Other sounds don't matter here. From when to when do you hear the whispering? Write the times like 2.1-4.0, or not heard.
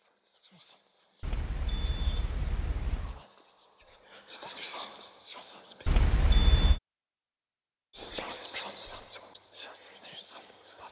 0.0-6.3, 8.0-10.8.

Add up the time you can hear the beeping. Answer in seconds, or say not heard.
3 s.